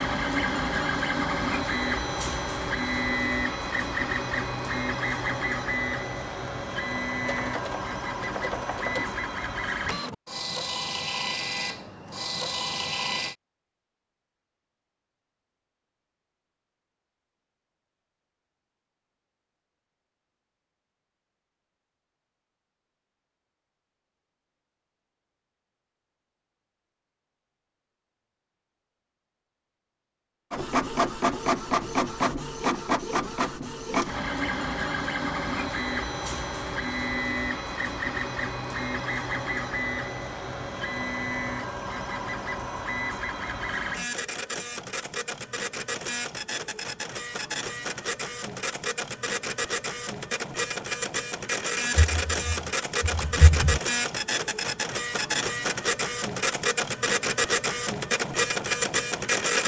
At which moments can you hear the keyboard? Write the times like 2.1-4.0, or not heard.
7.2-9.2, 52.0-53.8.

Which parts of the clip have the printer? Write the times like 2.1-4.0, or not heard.
0.0-13.3, 30.5-59.6.